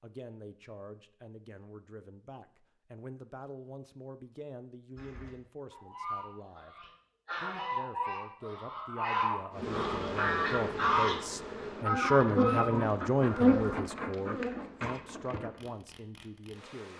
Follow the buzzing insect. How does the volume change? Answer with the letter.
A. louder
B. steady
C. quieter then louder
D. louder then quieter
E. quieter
D.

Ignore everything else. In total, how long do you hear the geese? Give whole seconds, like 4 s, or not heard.
9 s.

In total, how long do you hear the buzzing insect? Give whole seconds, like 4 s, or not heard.
7 s.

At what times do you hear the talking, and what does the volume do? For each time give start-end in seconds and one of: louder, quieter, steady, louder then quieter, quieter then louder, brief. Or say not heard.
0.0-16.9 louder then quieter.